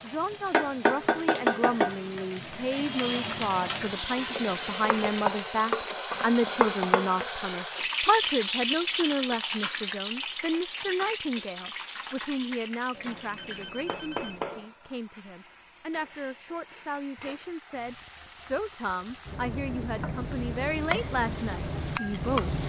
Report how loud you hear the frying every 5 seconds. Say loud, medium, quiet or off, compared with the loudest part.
loud, loud, medium, quiet, loud.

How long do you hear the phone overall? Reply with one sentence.
You can hear the phone for 3 seconds altogether.